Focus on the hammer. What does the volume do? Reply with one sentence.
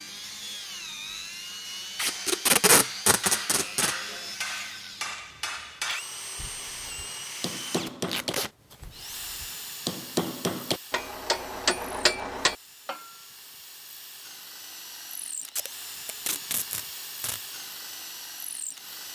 The loudness of the hammer goes up.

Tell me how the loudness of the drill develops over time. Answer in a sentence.
The volume of the drill goes down, then up.